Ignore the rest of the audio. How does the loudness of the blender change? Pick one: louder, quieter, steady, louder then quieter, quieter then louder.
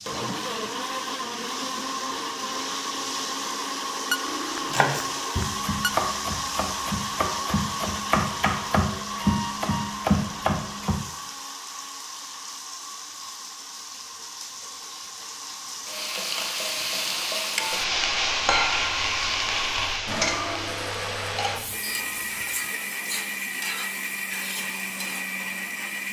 quieter then louder.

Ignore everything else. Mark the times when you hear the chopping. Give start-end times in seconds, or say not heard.
4.6-11.0.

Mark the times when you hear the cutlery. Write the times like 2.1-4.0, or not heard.
4.2-4.8, 20.2-20.9.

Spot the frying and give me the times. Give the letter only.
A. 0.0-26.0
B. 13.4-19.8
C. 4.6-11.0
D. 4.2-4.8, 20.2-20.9
A.